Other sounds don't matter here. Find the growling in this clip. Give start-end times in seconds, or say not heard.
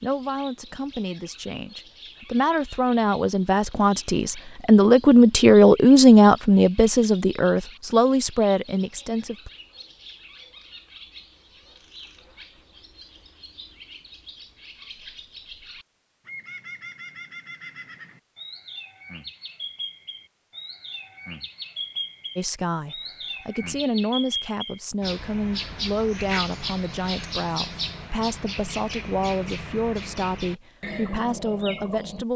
not heard.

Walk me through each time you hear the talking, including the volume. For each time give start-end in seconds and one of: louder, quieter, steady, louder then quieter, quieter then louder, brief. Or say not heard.
0.0-9.5 louder then quieter
22.4-32.3 steady.